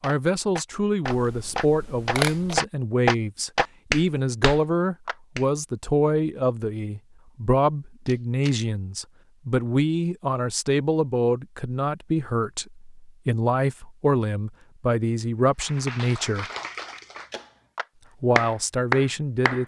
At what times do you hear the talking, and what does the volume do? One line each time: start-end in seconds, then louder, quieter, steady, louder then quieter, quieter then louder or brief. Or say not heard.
0.0-16.4 steady
18.2-19.6 brief.